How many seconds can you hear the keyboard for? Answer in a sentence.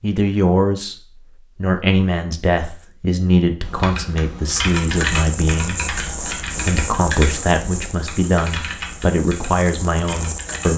The keyboard can be heard for 7 seconds in total.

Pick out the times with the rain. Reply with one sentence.
You can hear the rain from 4.8 to 10.7 s.